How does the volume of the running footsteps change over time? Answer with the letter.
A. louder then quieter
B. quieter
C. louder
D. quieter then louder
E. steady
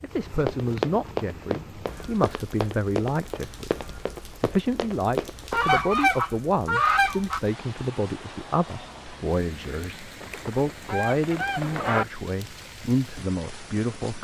D.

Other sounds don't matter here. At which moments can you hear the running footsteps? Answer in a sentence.
You can hear the running footsteps from 0.3 to 5.6 s.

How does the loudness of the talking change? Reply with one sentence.
The volume of the talking stays about the same.